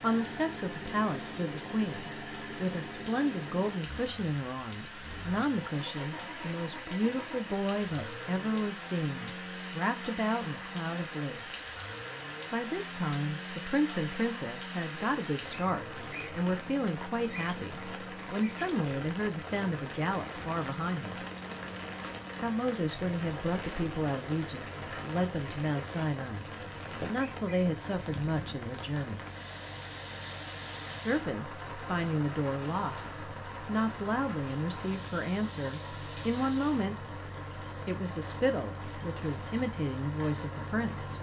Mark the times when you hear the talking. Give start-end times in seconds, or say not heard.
0.0-11.7, 12.5-21.2, 22.4-29.2, 31.0-37.1, 37.9-41.1.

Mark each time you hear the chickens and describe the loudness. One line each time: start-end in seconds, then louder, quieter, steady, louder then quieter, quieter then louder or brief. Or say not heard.
not heard.